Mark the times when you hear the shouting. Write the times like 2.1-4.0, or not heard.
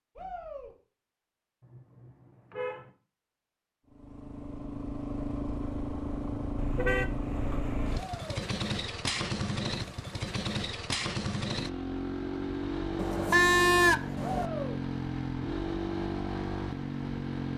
0.1-0.8, 8.0-8.5, 14.2-14.8.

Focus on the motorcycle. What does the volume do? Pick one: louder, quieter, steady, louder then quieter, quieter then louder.
steady.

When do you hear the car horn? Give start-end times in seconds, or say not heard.
1.6-2.9, 6.5-8.1, 12.9-14.5.